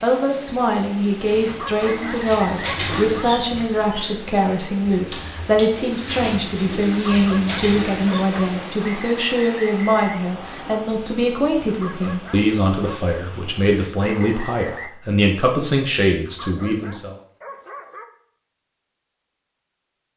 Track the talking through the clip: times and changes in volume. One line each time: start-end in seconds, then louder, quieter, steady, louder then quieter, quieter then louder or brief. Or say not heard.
0.0-17.1 steady.